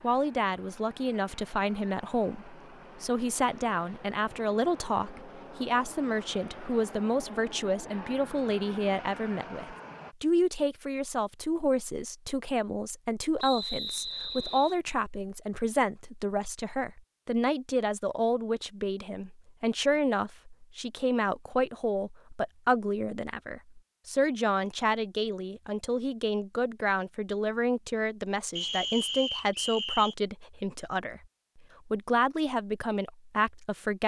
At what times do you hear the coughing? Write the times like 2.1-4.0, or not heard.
not heard.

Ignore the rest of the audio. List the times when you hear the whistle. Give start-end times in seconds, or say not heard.
13.3-14.8, 28.6-30.1.